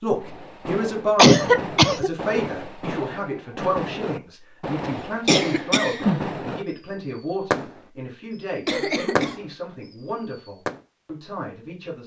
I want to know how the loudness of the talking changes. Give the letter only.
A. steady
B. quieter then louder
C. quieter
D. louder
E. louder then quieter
C.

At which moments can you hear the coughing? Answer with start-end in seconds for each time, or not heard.
1.1-2.1, 4.8-6.2, 8.7-9.4.